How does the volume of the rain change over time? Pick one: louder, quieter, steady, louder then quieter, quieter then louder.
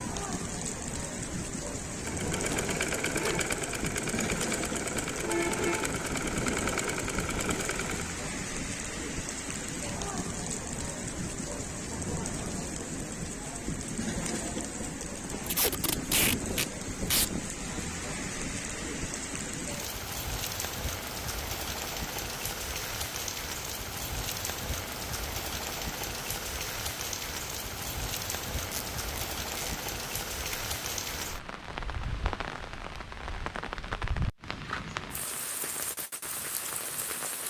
steady.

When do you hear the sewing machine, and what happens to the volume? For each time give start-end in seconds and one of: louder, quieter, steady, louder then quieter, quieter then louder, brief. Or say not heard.
1.9-8.2 steady.